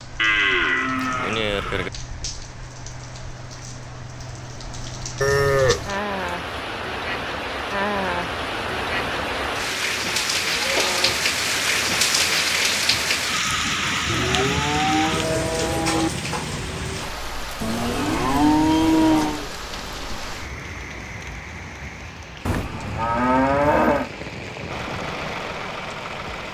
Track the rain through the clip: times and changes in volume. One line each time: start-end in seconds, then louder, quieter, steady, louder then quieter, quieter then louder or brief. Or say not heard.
0.0-26.4 louder then quieter.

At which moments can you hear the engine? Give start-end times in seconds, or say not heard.
24.6-26.4.